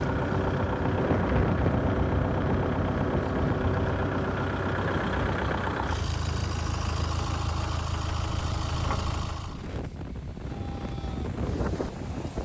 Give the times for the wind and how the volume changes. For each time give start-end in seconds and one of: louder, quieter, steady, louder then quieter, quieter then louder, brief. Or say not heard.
0.0-12.3 quieter then louder.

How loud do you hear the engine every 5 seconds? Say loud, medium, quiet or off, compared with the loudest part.
loud, loud, off.